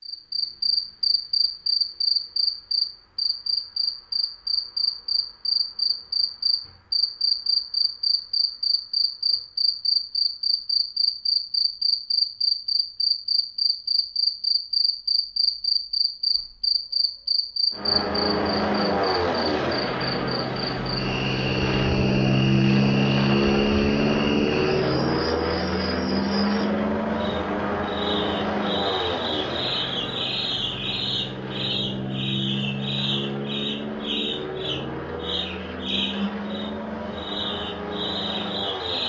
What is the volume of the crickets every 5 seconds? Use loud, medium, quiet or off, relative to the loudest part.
loud, loud, loud, loud, medium, medium, medium, medium.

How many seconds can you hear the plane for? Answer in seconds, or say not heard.
21 s.